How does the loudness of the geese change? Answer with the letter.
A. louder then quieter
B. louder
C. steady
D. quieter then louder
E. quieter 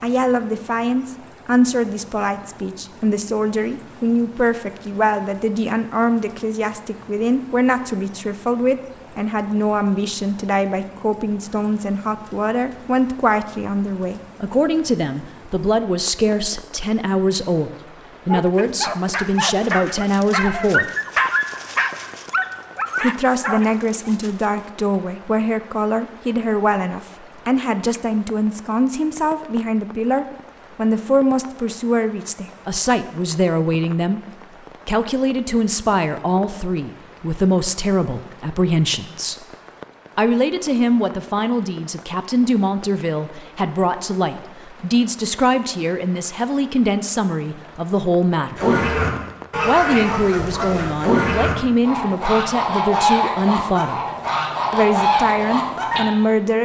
C.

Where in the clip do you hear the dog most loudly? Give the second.
21 s.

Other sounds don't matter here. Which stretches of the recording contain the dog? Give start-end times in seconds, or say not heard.
18.2-24.7.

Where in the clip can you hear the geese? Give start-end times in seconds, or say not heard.
48.5-56.0.